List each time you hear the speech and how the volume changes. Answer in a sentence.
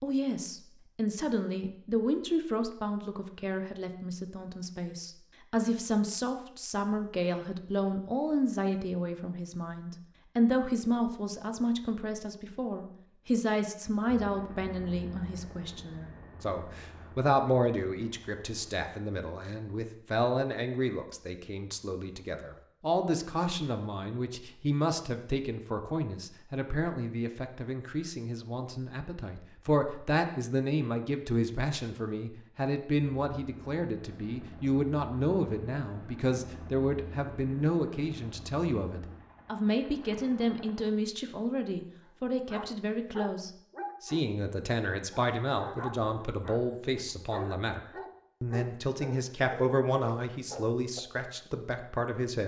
The speech can be heard from 0.0 to 52.4 s, at a steady volume.